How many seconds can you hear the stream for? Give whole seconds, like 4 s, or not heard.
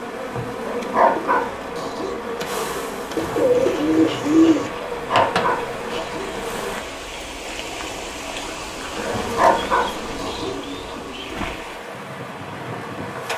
13 s.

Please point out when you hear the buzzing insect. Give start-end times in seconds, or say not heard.
0.0-6.8, 8.9-13.3.